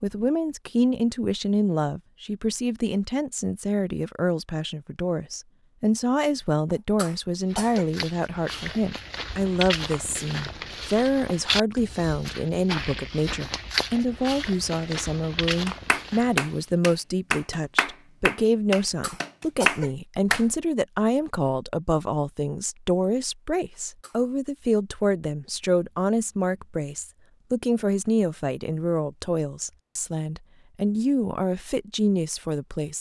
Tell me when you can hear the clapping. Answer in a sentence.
The clapping can be heard from 15.7 to 20.4 s.